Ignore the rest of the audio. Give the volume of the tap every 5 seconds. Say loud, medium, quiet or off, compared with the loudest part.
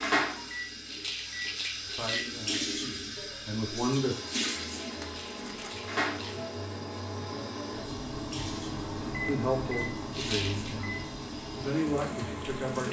loud, medium, medium.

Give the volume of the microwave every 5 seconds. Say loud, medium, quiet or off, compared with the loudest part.
medium, loud, loud.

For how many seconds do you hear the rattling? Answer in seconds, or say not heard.
4 s.